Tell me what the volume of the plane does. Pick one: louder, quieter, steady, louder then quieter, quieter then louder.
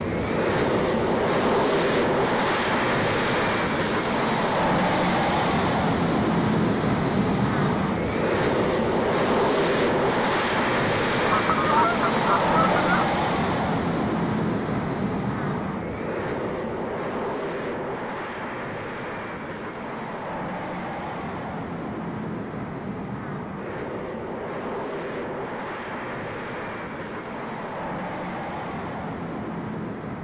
quieter.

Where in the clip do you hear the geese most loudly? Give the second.
12 s.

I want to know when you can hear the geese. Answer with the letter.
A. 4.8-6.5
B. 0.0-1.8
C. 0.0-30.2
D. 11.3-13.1
D.